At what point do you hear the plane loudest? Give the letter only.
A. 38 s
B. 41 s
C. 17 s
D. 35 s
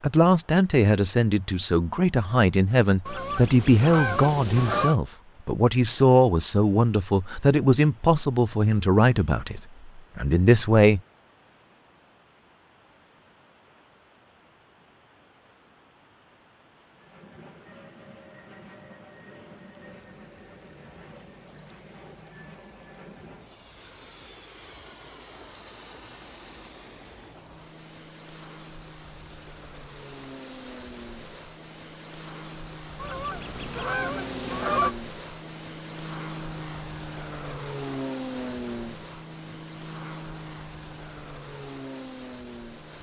A.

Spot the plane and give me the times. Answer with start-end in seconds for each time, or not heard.
16.9-42.9.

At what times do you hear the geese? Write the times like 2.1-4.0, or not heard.
3.0-5.0, 33.0-35.0.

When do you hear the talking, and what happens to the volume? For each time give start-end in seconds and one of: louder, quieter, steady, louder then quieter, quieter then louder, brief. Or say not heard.
0.0-11.0 steady.